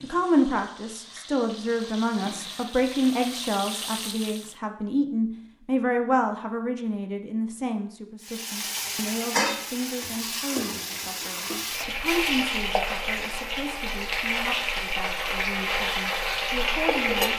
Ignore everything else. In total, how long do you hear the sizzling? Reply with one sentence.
The sizzling can be heard for 14 seconds in total.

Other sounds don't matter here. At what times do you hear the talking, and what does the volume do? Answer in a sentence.
The talking can be heard from 0.0 to 17.3 s, getting quieter.